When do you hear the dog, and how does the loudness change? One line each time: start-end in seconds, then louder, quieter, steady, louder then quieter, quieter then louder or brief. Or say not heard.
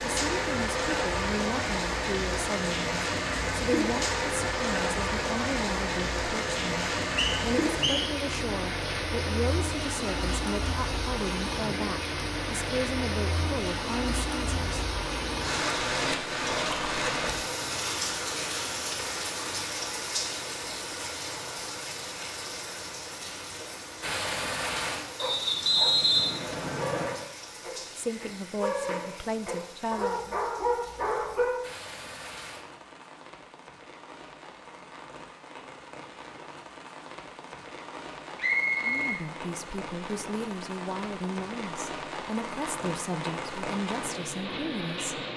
25.0-31.6 louder.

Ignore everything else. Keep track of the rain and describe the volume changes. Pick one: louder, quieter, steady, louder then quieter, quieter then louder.
quieter then louder.